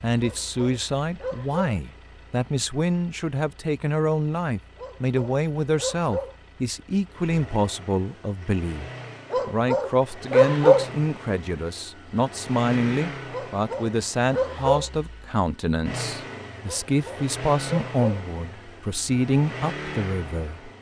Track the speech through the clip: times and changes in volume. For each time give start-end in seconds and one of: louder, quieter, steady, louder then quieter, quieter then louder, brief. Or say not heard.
0.0-20.7 steady.